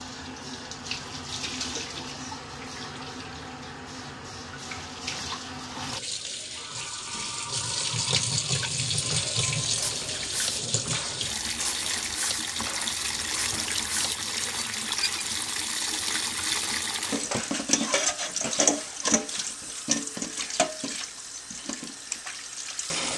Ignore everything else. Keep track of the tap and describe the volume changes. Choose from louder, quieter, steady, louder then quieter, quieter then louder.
louder.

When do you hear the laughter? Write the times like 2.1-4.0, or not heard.
not heard.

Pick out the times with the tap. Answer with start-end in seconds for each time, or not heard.
0.0-23.1.